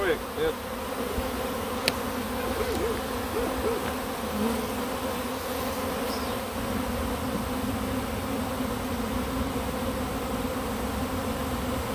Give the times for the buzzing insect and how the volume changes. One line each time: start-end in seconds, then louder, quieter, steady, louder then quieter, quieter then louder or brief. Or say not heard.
0.0-11.9 steady.